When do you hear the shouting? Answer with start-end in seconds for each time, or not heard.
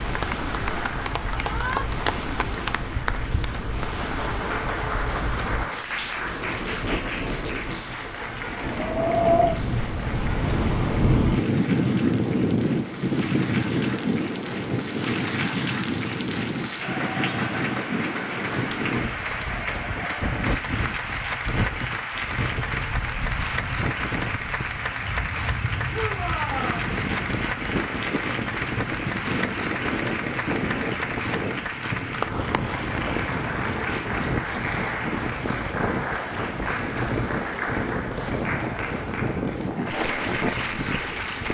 1.3-1.9, 25.9-26.9.